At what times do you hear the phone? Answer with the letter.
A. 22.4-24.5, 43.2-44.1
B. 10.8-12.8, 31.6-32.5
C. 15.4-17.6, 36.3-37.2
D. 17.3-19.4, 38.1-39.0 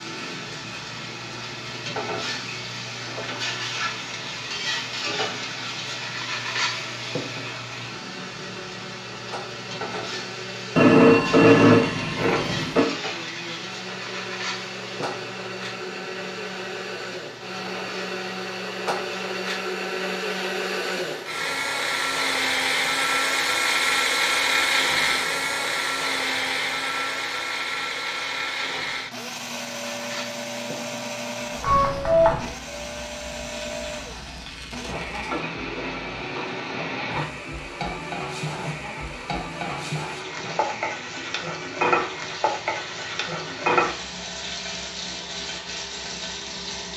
B.